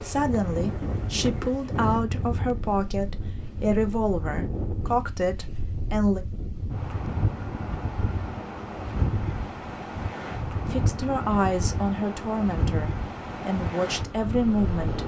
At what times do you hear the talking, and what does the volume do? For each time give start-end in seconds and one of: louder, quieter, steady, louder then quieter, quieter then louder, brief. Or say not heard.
0.0-6.2 steady
10.7-15.0 quieter then louder.